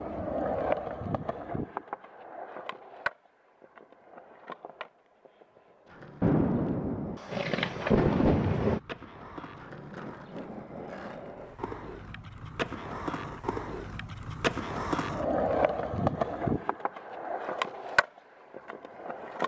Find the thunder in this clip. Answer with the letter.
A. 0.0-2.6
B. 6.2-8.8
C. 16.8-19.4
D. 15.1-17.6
B.